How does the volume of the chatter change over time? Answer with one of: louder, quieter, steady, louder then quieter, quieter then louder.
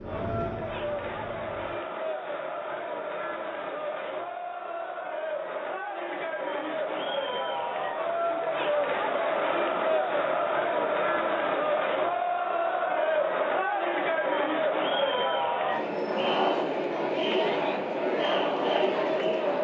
louder.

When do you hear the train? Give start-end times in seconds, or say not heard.
0.0-1.9.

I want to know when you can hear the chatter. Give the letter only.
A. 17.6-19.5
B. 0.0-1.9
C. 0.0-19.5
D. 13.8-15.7
C.